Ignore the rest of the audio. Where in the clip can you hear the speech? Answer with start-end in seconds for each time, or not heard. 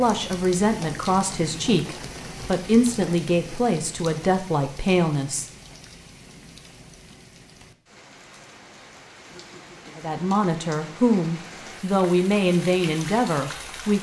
0.0-5.5, 9.9-13.9.